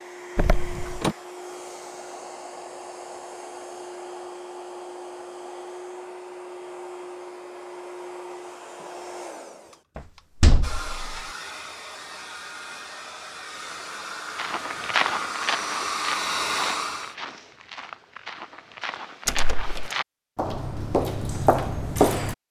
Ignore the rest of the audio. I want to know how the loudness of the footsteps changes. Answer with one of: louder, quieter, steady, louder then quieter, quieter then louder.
quieter then louder.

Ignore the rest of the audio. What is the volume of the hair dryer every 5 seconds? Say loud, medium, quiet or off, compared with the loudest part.
medium, medium, medium, loud, off.